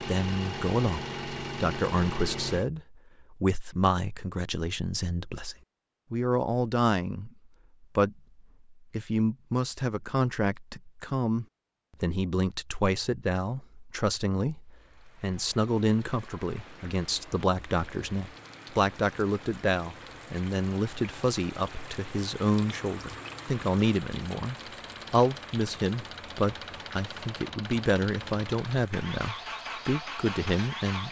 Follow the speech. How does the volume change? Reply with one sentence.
The volume of the speech stays about the same.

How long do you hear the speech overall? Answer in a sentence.
You can hear the speech for 31 seconds altogether.